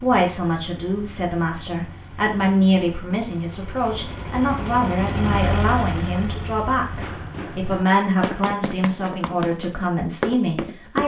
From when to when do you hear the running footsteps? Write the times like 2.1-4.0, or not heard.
6.8-11.0.